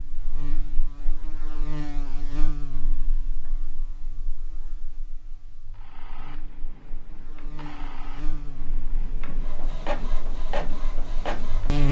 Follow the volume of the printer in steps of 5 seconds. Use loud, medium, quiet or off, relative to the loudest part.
off, medium, loud.